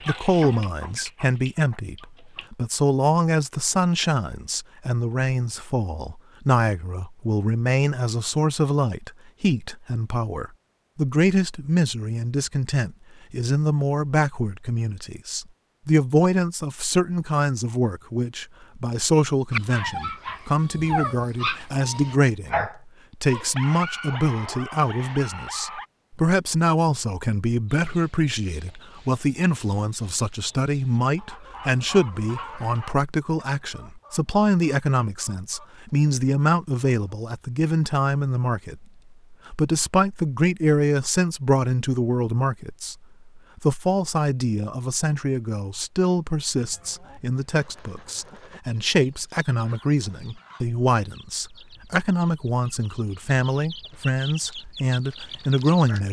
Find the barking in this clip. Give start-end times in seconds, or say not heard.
19.5-25.9.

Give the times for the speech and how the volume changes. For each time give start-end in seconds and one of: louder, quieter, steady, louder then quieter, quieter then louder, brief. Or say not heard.
0.1-56.0 steady.